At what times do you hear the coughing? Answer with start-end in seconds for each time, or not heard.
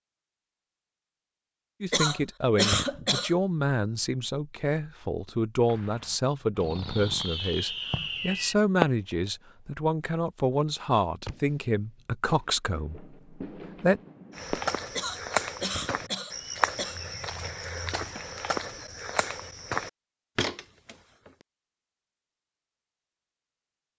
1.9-3.4, 14.9-17.0.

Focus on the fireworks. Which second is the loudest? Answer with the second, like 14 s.
9 s.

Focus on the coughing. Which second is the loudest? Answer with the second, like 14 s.
3 s.